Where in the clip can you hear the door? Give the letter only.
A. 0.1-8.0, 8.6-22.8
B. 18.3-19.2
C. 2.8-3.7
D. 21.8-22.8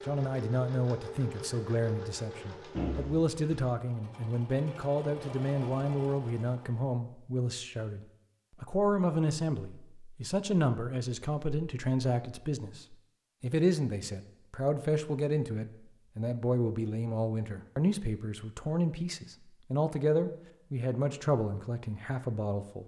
C.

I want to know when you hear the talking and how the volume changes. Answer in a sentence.
The talking can be heard from 0.1 to 8.0 s, at a steady volume; and from 8.6 to 22.8 s, at a steady volume.